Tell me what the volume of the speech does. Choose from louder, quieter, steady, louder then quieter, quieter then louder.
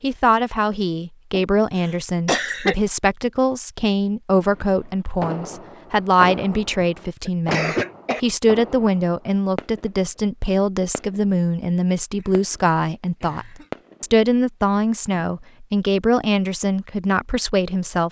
steady.